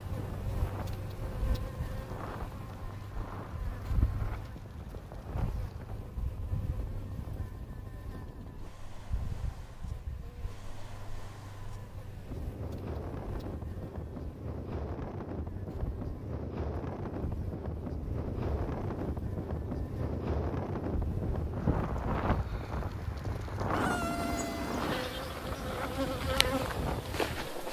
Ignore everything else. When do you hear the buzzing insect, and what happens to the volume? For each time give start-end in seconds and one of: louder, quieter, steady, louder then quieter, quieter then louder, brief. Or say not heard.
0.0-27.6 quieter then louder.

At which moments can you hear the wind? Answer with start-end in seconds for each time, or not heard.
0.0-27.6.